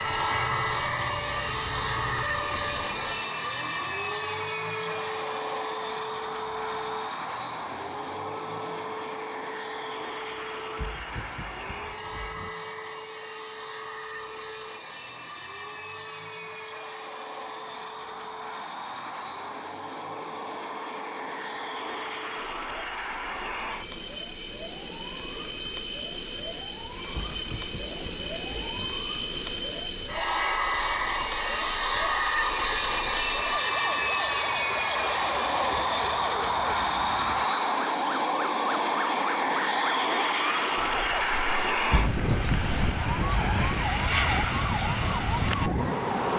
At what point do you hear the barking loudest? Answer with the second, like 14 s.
42 s.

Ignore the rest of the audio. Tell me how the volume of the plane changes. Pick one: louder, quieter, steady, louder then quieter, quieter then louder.
quieter then louder.